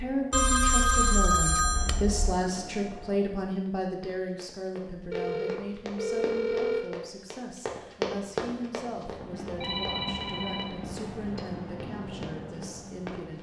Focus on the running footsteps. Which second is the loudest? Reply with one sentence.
The volume of the running footsteps peaks at 8 seconds.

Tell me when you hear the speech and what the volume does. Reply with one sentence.
You can hear the speech from 0.0 to 13.3 s, getting quieter.